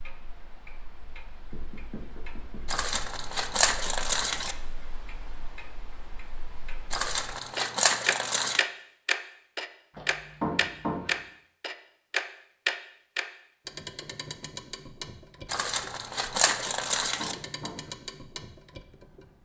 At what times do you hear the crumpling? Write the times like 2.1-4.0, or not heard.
2.6-4.5, 6.9-8.6, 15.5-17.4.